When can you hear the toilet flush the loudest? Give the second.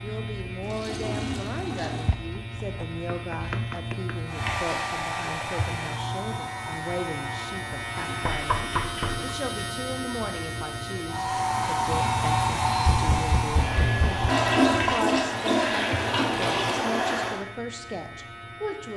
15 s.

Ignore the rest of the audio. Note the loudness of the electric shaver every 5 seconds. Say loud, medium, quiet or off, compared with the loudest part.
loud, loud, loud, medium.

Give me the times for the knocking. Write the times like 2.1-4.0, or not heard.
1.9-4.2, 8.2-9.2, 12.8-14.3.